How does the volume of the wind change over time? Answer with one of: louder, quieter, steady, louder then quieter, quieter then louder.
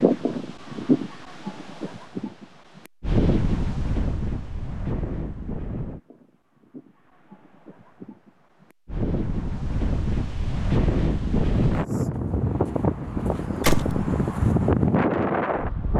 quieter then louder.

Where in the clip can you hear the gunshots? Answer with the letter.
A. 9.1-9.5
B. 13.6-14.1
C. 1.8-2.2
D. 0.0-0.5
B.